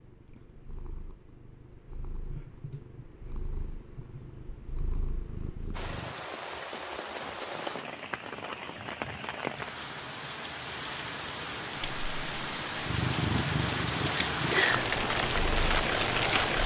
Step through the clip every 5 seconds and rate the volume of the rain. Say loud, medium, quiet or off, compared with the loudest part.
off, medium, medium, loud.